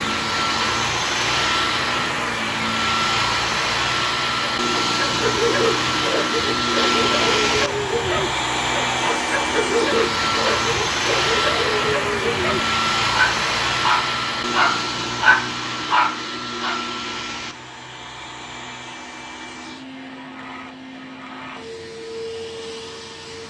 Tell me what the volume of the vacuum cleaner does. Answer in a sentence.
The volume of the vacuum cleaner goes down.